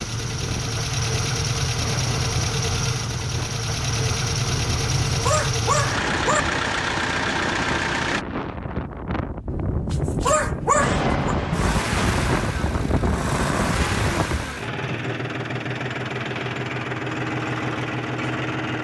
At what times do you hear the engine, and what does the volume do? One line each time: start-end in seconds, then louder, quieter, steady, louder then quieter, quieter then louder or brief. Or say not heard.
0.0-8.2 steady
10.8-18.8 steady.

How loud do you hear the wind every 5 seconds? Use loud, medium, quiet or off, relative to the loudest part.
medium, medium, loud, off.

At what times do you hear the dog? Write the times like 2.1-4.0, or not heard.
4.5-6.4, 9.4-11.3.